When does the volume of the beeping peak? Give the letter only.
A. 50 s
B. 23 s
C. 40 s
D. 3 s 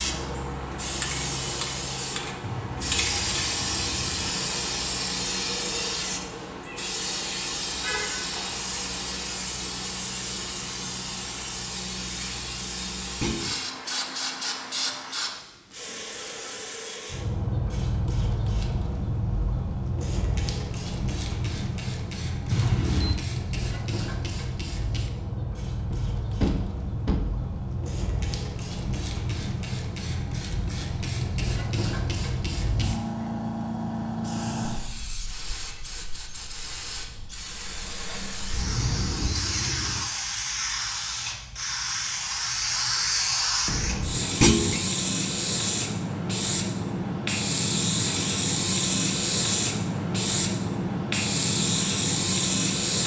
B.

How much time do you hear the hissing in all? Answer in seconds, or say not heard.
53 s.